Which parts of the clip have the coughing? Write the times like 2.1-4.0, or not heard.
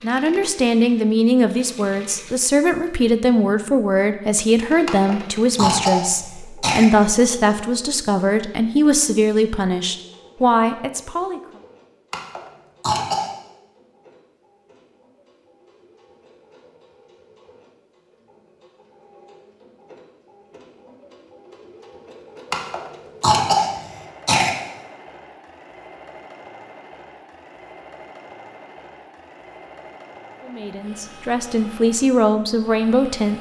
4.8-6.8, 12.1-13.3, 22.5-24.5.